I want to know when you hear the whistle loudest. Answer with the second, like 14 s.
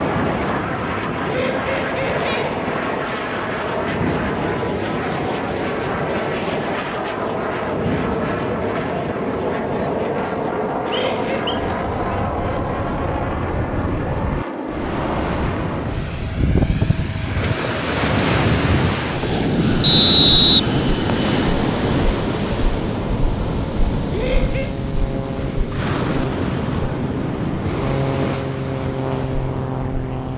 20 s.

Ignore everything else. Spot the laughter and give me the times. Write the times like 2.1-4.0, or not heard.
1.2-2.5, 10.8-11.5, 24.1-24.8.